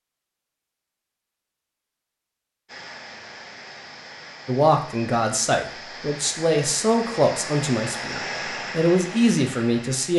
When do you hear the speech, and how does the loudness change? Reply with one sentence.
The speech can be heard from 4.5 to 10.1 s, getting quieter then louder.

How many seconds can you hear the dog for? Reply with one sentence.
You can't hear the dog here.